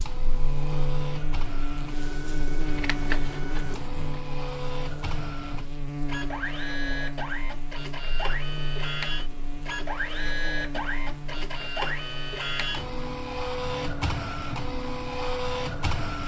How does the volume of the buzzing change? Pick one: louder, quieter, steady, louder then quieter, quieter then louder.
quieter.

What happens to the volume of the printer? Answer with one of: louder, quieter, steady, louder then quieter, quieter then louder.
louder.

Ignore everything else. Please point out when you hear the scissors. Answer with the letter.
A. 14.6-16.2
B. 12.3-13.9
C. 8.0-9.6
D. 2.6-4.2
D.